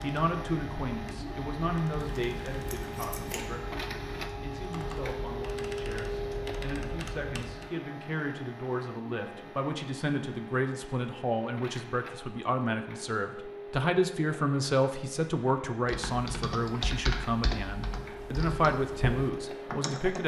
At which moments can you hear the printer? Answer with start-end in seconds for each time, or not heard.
0.0-20.2.